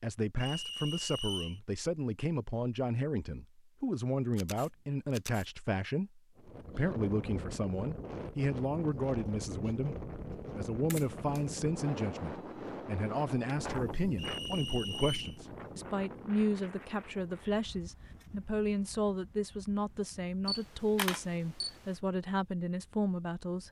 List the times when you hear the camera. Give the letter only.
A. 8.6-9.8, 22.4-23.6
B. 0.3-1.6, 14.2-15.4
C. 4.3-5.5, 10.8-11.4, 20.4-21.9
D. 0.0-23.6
C.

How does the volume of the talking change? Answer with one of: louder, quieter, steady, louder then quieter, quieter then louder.
steady.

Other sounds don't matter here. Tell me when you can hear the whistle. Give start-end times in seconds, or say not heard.
0.3-1.6, 14.2-15.4.